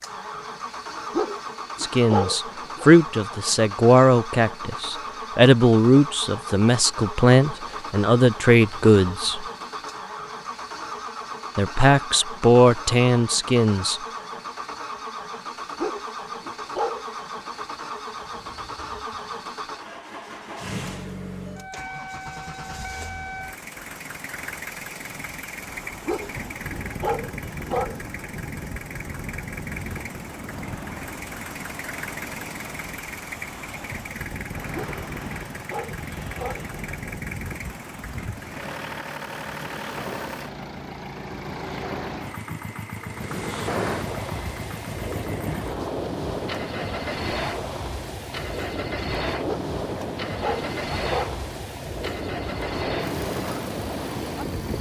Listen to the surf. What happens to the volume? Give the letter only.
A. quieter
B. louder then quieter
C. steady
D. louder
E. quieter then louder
D.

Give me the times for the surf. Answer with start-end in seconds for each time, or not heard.
25.4-54.7.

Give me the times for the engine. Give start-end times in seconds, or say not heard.
0.0-54.7.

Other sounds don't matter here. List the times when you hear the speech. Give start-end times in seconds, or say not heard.
1.8-9.4, 11.6-14.0.